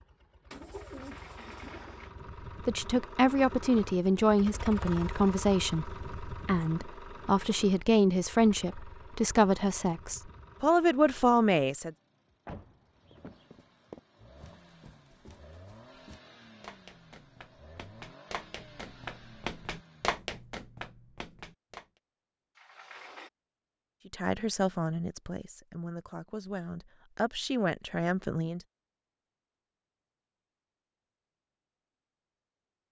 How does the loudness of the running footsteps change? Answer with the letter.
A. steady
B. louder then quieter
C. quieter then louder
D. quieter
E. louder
E.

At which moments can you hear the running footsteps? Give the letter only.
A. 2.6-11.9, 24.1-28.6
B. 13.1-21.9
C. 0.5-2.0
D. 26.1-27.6
B.